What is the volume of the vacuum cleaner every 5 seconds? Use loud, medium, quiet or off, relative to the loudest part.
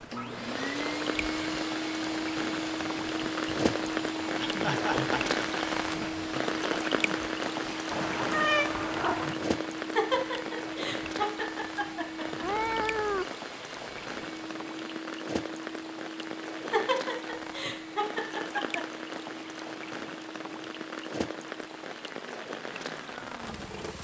loud, loud, medium, medium, quiet.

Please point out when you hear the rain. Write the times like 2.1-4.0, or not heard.
0.0-23.9.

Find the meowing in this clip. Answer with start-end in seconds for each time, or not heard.
7.9-9.3, 12.4-13.3.